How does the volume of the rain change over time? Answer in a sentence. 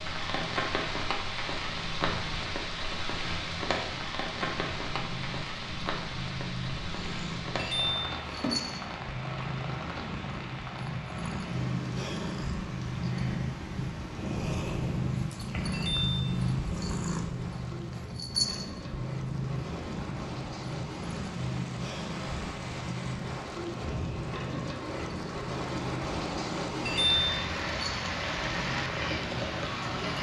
The loudness of the rain goes down, then up.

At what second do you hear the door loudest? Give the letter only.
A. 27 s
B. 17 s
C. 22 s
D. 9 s
A.